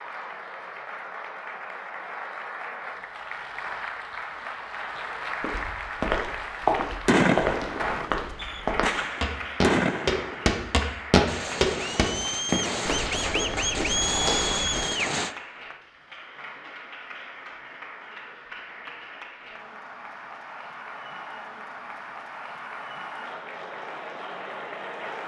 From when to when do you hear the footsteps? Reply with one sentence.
The footsteps can be heard from 5.4 to 14.8 s.